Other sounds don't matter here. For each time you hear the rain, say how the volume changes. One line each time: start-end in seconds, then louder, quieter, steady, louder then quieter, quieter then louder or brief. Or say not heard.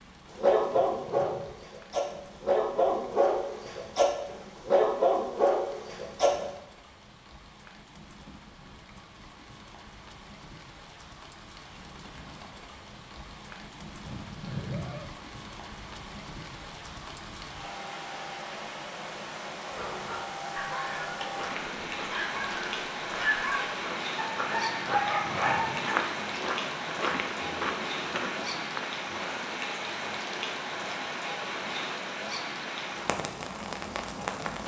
0.0-34.6 louder.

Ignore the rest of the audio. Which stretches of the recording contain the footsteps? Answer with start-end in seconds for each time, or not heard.
21.2-28.9.